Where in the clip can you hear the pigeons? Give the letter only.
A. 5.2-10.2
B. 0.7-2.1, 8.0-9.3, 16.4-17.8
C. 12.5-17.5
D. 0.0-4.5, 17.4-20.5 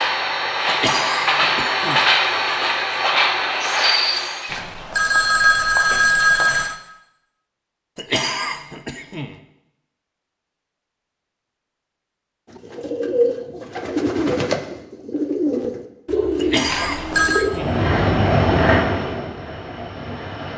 C.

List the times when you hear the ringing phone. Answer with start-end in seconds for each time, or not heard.
4.5-6.8, 16.6-17.4.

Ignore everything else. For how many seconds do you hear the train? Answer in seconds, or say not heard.
8 s.